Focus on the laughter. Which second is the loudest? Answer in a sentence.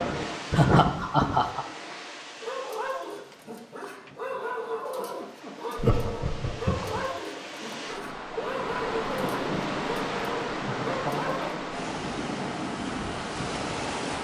The volume of the laughter peaks at 1 second.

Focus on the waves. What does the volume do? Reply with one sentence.
The loudness of the waves goes down, then up.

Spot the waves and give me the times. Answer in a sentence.
You can hear the waves from 0.0 to 14.2 s.